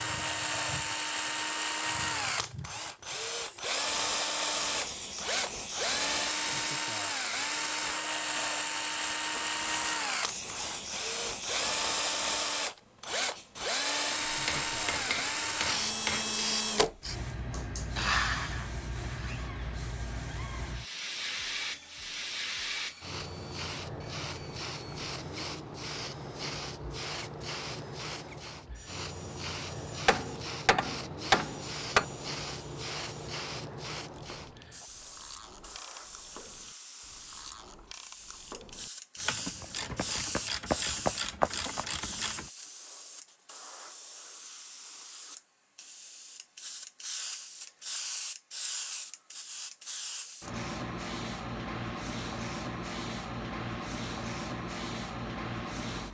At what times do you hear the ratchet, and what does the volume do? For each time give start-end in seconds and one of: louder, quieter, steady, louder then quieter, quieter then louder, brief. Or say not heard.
34.0-42.5 louder.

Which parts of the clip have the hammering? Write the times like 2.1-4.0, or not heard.
14.2-16.4, 30.1-32.0.